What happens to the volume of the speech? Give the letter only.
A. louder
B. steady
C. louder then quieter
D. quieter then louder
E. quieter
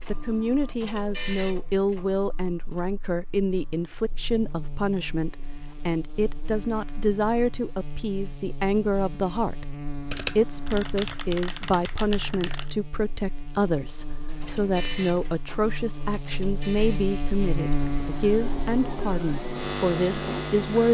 B.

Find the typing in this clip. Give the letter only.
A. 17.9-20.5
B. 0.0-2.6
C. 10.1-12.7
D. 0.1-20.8
C.